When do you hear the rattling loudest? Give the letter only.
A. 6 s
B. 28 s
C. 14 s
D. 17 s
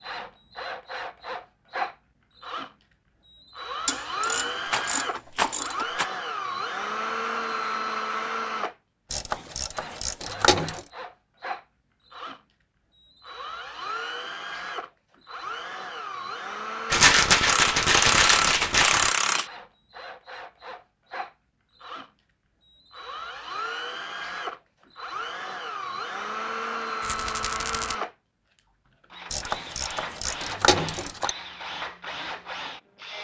D.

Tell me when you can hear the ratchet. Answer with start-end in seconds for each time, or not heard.
3.9-5.8, 9.1-10.8, 17.4-19.4, 29.3-31.4.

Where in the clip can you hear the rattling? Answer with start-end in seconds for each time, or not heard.
4.7-6.0, 16.9-19.1, 27.0-27.9.